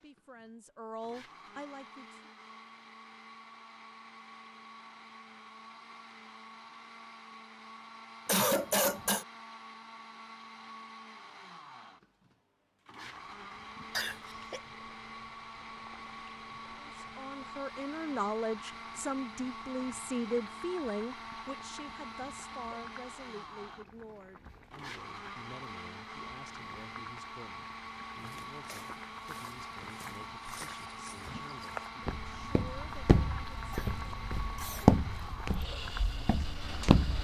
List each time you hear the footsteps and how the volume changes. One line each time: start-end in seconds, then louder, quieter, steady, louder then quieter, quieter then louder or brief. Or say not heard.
28.1-37.1 louder then quieter.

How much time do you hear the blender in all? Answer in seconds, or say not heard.
37 s.